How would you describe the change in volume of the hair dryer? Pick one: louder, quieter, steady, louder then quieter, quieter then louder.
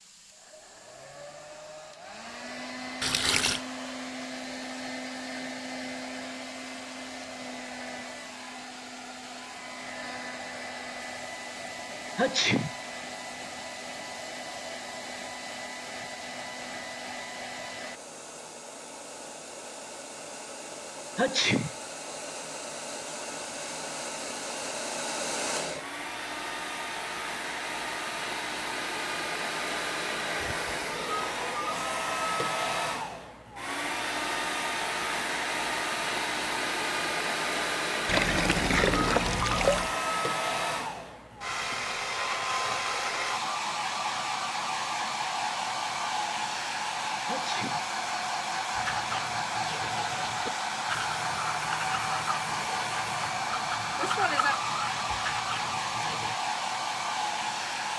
louder.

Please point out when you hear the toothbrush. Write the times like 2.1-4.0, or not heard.
48.8-56.4.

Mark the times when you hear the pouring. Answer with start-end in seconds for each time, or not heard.
3.0-3.6, 38.0-40.0.